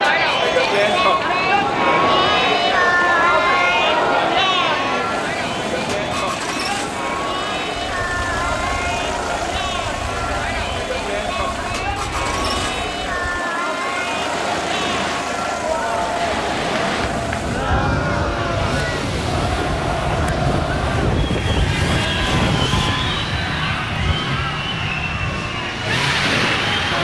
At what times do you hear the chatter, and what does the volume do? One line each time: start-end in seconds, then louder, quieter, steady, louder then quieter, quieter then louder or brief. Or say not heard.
0.0-26.9 quieter.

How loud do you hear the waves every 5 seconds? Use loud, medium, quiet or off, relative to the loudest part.
medium, medium, medium, loud, loud, loud.